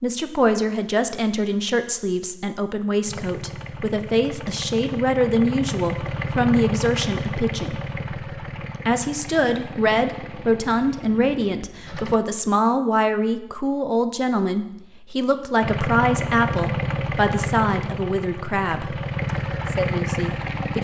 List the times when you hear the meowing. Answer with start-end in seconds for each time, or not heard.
not heard.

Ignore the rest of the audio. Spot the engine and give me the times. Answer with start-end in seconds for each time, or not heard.
3.0-12.2, 15.6-20.7.